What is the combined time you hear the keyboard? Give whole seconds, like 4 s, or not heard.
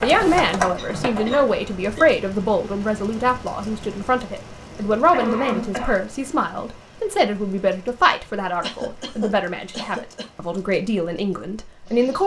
2 s.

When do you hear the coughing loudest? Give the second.
5 s.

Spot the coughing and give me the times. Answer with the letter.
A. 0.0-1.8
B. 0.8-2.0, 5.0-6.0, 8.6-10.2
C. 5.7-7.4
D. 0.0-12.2
B.